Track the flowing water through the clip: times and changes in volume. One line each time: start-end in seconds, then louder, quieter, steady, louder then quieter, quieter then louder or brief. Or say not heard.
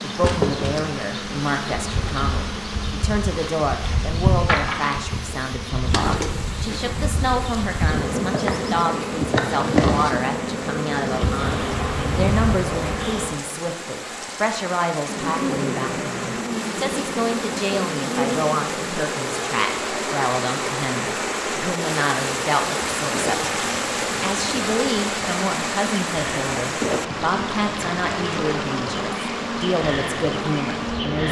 0.0-31.2 louder.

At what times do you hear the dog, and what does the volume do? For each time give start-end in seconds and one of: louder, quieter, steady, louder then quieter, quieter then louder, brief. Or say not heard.
not heard.